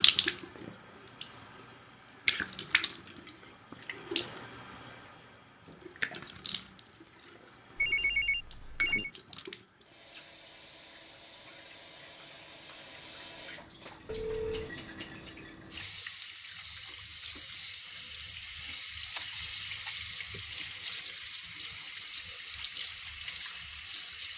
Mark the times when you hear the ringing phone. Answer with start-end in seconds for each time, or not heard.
7.8-9.1, 14.1-14.7.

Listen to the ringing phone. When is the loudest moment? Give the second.
8 s.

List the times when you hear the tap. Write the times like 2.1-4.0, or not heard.
0.0-24.3.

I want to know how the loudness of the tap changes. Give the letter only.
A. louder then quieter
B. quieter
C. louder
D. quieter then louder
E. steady
D.